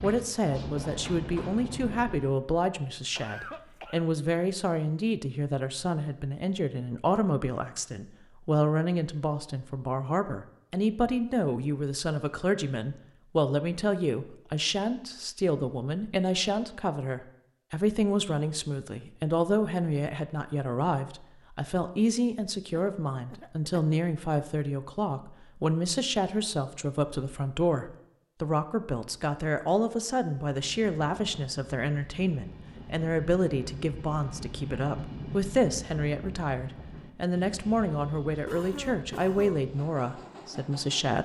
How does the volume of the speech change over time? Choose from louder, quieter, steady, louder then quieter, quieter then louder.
steady.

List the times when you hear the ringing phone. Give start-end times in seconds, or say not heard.
not heard.